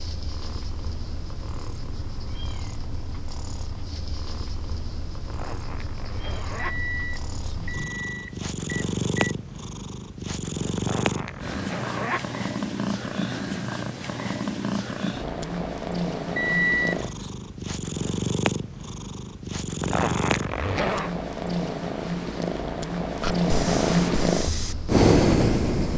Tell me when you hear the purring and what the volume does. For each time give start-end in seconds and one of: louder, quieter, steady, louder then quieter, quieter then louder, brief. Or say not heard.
0.0-25.9 louder.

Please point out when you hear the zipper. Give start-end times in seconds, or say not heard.
5.3-6.8, 10.8-12.2, 19.8-21.1.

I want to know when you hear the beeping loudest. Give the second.
17 s.